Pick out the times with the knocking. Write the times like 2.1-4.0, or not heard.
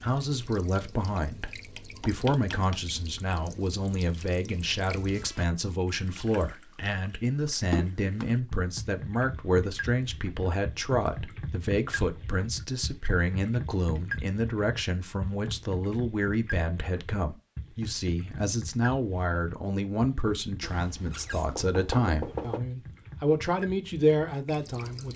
1.8-2.8, 20.6-22.6.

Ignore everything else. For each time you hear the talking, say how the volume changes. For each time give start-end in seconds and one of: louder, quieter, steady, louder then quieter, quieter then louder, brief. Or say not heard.
0.0-25.1 steady.